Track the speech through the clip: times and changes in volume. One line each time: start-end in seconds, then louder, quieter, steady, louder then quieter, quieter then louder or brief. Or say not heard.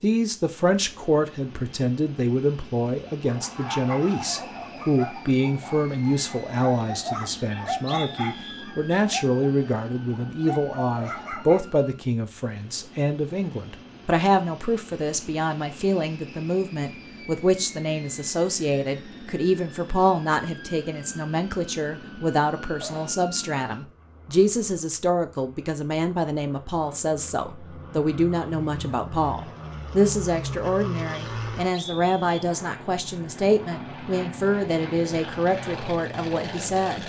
0.0-37.0 steady.